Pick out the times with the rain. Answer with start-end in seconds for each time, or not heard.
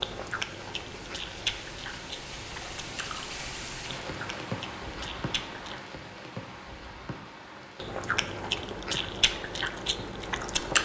0.0-10.7.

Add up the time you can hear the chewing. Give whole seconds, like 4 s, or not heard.
9 s.